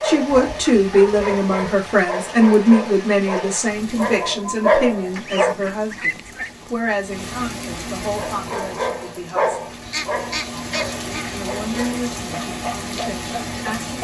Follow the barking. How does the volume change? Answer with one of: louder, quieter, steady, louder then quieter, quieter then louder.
louder then quieter.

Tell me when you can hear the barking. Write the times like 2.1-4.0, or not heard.
0.0-5.5, 8.2-13.9.